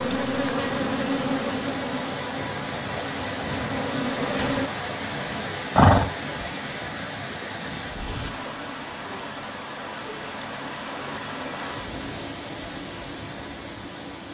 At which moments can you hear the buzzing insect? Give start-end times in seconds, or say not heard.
0.0-4.7.